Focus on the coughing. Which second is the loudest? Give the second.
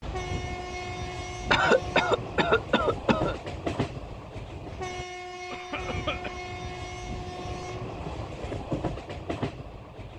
2 s.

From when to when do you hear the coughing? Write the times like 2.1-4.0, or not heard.
1.5-3.4, 5.5-6.4.